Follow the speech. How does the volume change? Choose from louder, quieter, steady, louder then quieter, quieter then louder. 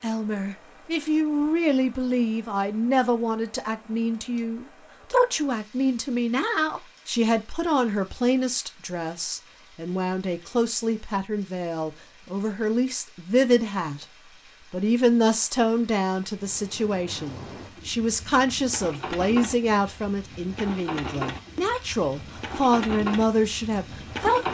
steady.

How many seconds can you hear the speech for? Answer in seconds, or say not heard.
24 s.